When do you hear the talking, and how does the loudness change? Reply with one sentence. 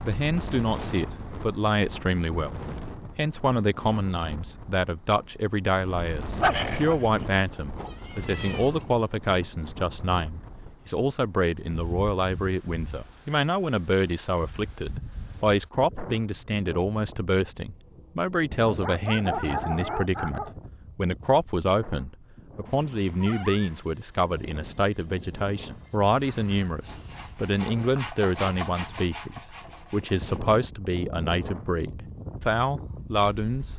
The talking can be heard from 0.0 to 33.7 s, at a steady volume.